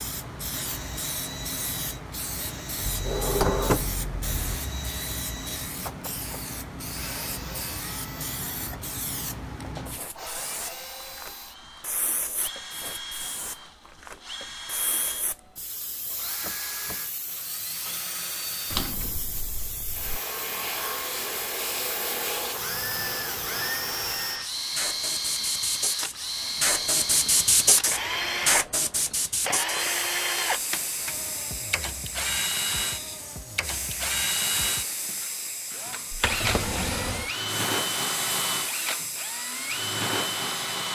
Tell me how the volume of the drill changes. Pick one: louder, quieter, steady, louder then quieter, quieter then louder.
louder.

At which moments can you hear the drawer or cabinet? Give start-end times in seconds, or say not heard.
2.8-4.6, 18.7-20.2, 36.1-37.3.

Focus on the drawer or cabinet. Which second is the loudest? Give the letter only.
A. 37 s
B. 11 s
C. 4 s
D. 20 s
C.